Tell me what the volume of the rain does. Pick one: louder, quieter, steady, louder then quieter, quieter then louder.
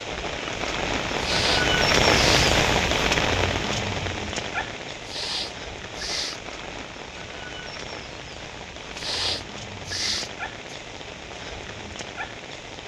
quieter.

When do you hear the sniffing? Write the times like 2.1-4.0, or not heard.
1.1-2.5, 5.0-6.4, 8.9-10.8.